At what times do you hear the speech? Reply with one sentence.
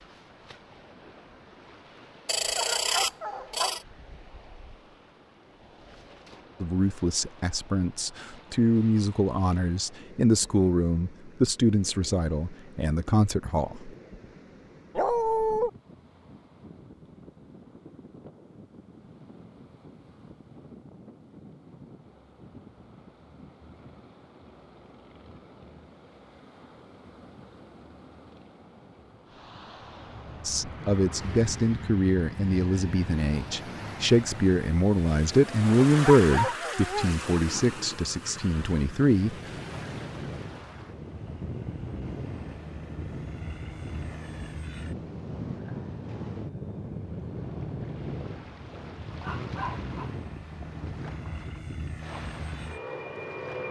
The speech can be heard from 6.6 to 13.9 s and from 30.4 to 39.4 s.